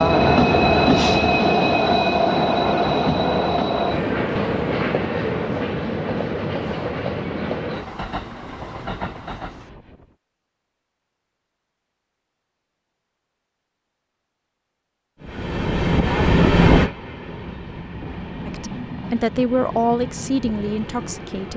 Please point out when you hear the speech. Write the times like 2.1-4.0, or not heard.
18.4-21.5.